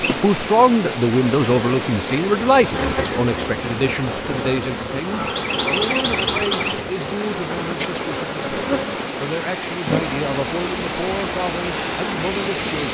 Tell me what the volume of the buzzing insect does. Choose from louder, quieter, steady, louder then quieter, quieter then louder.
louder then quieter.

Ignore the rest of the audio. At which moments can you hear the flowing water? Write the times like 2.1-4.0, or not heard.
0.0-12.8.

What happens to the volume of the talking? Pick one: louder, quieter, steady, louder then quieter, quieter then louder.
quieter.